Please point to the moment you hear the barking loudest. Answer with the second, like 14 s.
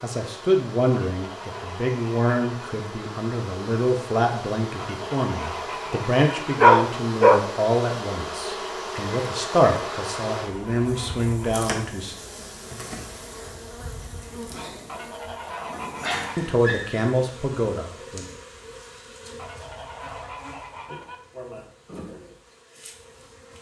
7 s.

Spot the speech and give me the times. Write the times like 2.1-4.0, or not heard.
0.0-12.2, 16.4-18.2.